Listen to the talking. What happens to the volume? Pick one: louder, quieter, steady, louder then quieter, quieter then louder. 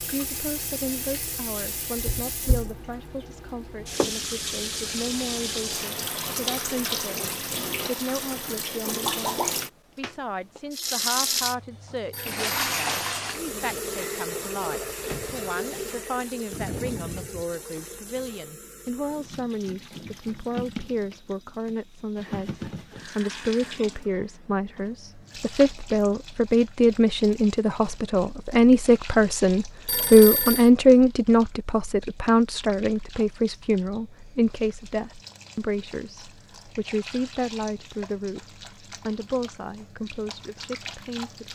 louder then quieter.